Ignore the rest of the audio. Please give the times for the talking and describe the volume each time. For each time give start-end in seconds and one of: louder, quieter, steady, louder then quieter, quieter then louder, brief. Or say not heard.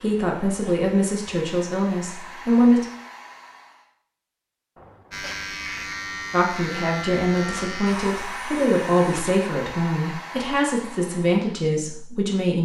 0.0-2.9 brief
6.3-12.6 steady.